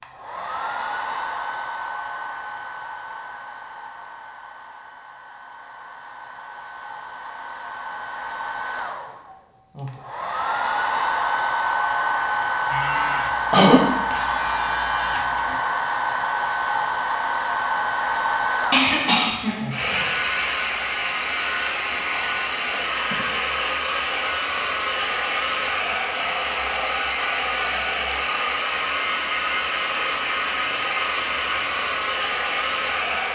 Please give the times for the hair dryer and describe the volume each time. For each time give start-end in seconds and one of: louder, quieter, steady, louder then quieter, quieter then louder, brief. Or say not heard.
0.0-33.3 louder.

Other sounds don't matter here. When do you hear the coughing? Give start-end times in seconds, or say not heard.
13.5-13.9, 18.7-19.7.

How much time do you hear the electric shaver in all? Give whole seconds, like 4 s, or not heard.
3 s.